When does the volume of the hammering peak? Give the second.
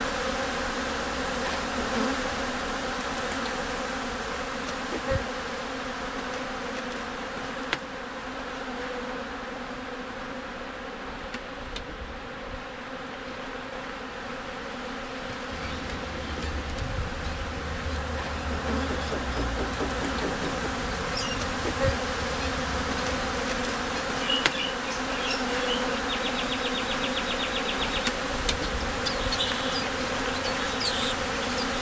20 s.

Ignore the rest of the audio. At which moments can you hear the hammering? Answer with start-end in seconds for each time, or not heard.
18.7-20.7.